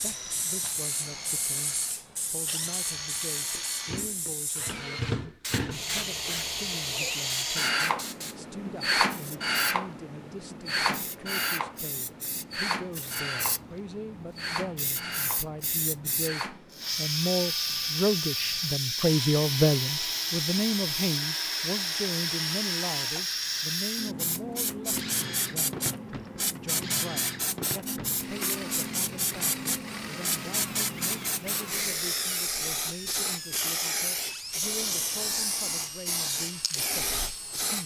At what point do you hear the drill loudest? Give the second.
9 s.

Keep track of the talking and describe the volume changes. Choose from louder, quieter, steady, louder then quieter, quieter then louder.
louder then quieter.